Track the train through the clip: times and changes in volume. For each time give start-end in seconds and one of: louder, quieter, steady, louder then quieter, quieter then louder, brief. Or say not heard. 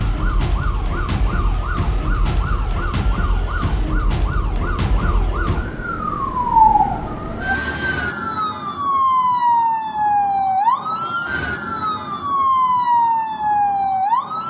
0.0-5.7 steady.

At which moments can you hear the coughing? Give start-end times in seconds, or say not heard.
not heard.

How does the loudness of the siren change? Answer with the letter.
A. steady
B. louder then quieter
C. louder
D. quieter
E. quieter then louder
C.